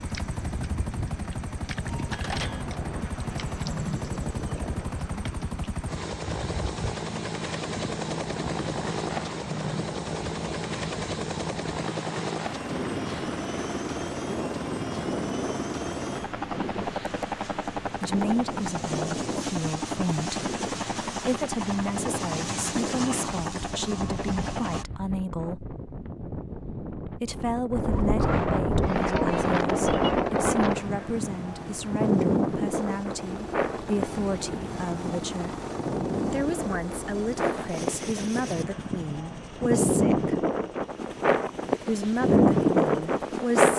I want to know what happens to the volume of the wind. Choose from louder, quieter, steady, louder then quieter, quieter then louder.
louder.